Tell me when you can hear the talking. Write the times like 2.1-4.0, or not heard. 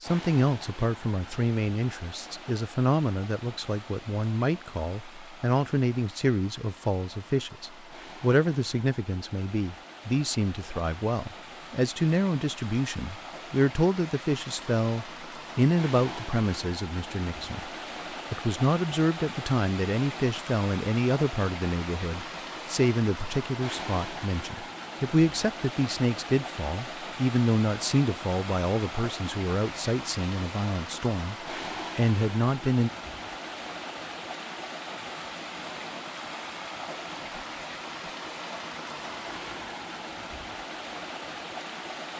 0.0-17.7, 18.3-31.4, 31.9-32.9.